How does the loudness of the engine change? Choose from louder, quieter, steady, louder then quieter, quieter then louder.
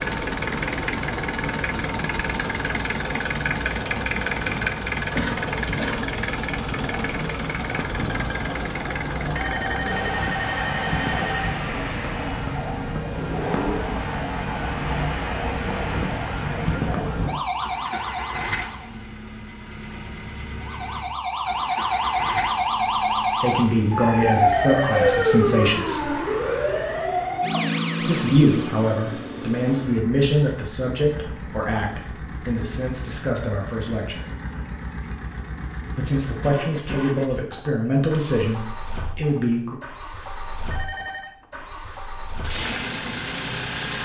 quieter.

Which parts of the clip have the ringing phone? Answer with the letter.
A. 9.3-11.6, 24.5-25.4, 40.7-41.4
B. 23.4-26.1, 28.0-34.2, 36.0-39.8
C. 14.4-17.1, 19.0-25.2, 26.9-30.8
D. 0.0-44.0
A.